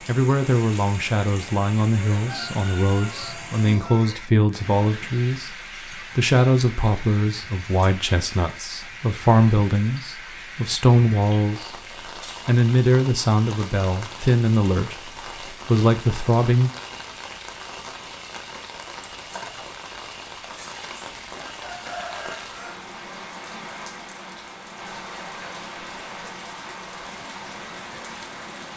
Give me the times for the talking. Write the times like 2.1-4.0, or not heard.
0.1-11.8, 12.4-16.7.